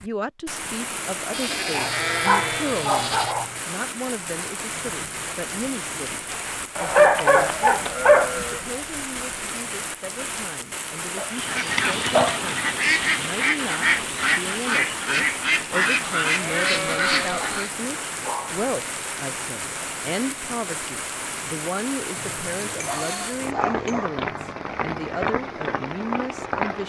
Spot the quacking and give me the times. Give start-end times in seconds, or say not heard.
11.2-17.7.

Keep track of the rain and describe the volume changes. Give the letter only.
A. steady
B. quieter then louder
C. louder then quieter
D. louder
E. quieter
A.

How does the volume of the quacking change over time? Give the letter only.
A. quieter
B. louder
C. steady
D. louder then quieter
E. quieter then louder
C.